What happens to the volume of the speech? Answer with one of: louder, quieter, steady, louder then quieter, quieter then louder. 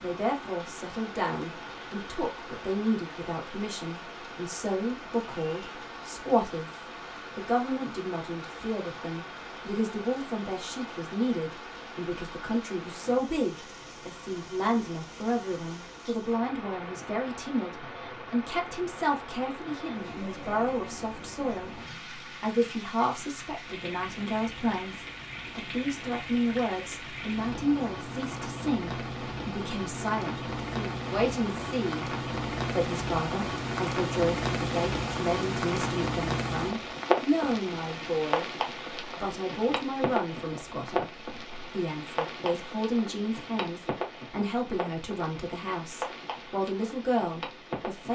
steady.